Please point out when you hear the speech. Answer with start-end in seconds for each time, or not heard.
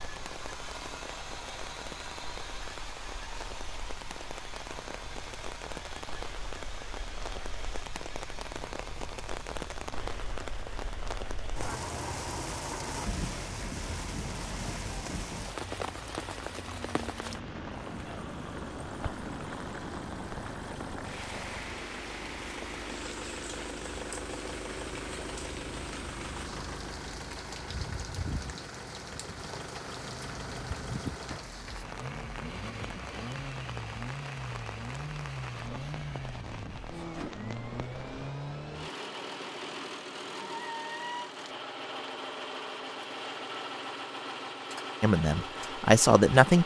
45.0-46.6.